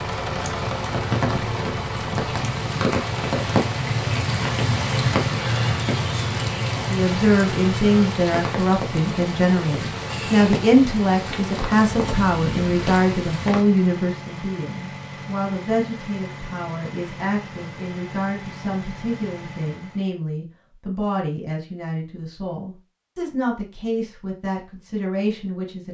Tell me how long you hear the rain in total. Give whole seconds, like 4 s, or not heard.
14 s.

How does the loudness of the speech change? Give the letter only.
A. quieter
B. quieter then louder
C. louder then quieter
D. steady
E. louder
A.